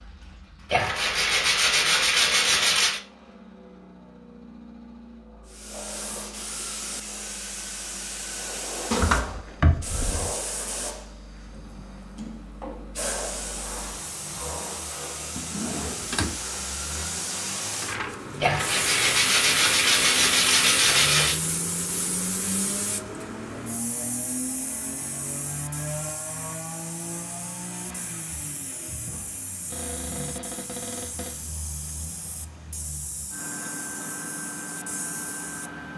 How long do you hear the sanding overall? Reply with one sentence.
The sanding can be heard for 5 seconds in total.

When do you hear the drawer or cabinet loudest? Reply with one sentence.
The loudest moment of the drawer or cabinet is at 9 seconds.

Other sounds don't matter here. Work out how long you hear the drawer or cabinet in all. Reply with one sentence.
You can hear the drawer or cabinet for 4 seconds altogether.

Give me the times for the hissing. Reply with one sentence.
You can hear the hissing from 5.5 to 35.8 s.